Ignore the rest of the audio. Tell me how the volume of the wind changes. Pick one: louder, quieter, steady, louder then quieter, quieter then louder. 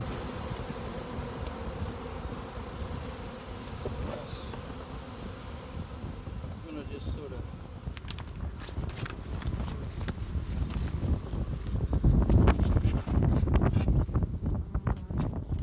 louder.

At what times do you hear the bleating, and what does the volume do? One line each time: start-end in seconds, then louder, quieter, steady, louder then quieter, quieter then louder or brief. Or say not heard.
not heard.